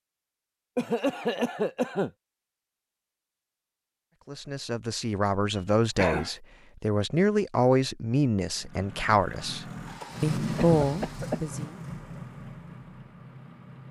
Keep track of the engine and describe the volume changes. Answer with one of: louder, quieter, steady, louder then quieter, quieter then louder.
louder then quieter.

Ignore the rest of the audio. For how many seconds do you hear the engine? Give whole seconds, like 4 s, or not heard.
5 s.